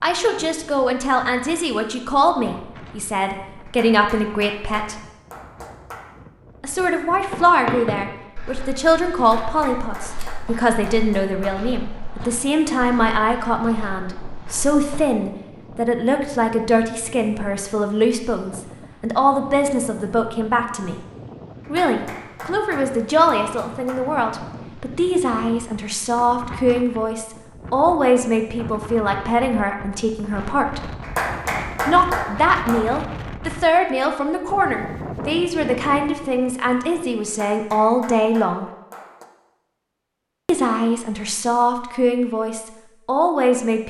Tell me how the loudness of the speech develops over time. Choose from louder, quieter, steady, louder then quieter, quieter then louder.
steady.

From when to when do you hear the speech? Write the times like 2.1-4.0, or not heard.
0.0-5.0, 6.6-21.0, 21.7-30.8, 31.9-38.7, 40.5-43.8.